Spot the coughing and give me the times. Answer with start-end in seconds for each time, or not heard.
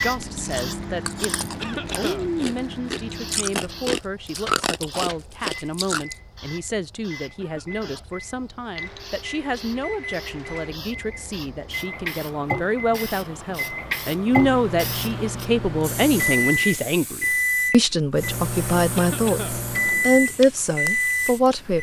1.6-2.3, 7.3-8.1, 18.9-19.6.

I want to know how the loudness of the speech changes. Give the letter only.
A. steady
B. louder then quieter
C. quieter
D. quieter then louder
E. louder
E.